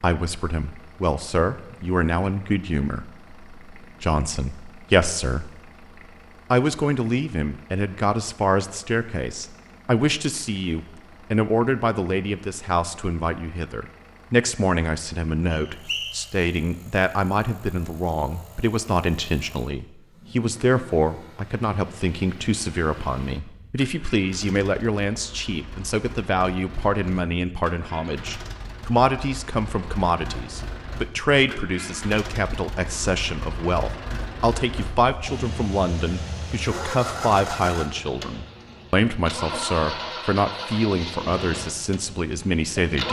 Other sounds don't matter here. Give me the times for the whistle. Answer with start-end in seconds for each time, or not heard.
15.5-16.1.